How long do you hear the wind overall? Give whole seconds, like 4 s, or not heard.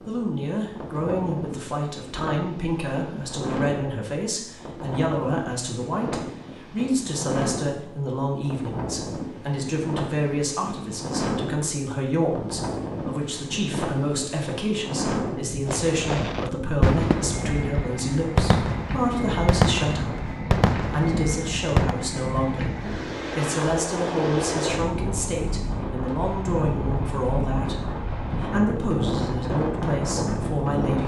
31 s.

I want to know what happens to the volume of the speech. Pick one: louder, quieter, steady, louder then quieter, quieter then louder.
steady.